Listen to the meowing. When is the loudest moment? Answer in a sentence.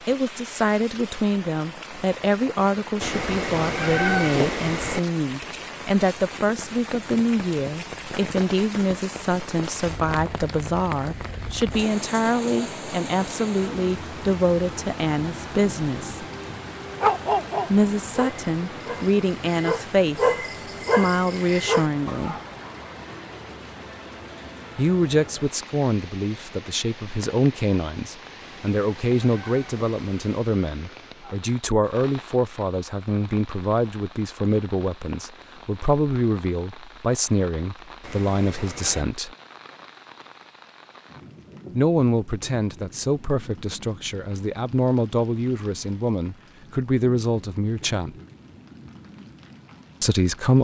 The volume of the meowing peaks at 4 seconds.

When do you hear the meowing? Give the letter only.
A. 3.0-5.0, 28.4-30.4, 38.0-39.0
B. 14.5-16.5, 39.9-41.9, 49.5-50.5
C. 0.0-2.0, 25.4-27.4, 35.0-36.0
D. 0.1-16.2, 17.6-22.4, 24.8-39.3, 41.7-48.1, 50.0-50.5
A.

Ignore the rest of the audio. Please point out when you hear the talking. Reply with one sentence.
The talking can be heard from 0.1 to 16.2 s, from 17.6 to 22.4 s, from 24.8 to 39.3 s, from 41.7 to 48.1 s and from 50.0 to 50.5 s.